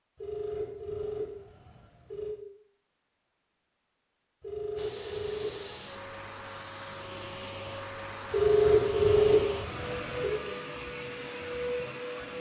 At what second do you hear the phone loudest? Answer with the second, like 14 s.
9 s.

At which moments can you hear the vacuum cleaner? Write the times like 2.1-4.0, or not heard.
4.8-12.3.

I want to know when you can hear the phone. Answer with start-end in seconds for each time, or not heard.
0.2-2.4, 4.4-5.8, 8.3-10.3.